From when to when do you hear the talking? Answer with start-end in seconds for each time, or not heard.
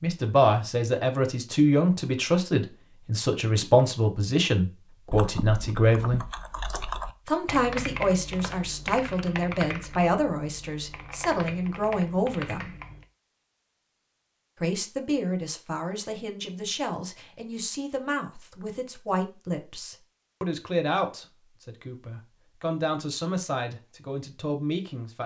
0.0-6.2, 7.2-12.8, 14.6-25.2.